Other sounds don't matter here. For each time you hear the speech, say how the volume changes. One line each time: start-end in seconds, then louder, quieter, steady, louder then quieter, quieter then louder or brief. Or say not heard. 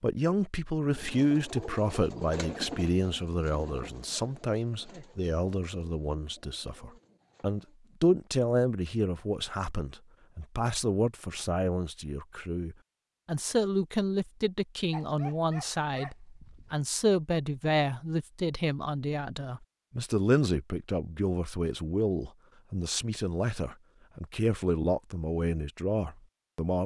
0.0-26.8 steady.